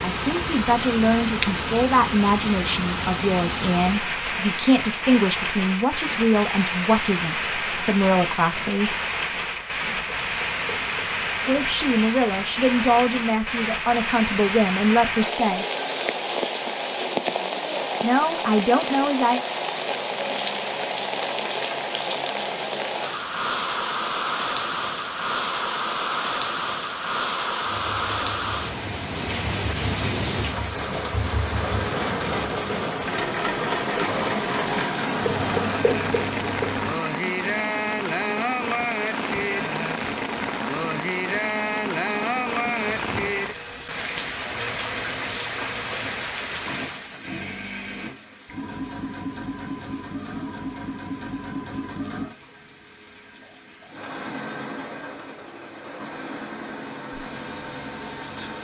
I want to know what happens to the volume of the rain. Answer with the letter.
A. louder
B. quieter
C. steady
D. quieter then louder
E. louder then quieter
B.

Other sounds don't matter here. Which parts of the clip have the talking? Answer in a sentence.
The talking can be heard from 0.0 to 8.9 s, from 11.4 to 15.7 s and from 18.0 to 19.4 s.